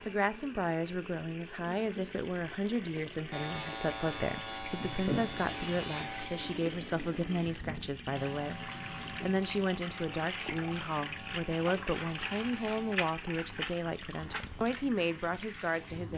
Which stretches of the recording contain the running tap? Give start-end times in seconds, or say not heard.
0.0-16.1.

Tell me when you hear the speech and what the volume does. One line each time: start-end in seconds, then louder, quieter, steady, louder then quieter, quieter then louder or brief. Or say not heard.
0.1-16.1 steady.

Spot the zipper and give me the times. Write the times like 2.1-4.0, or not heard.
5.0-5.8.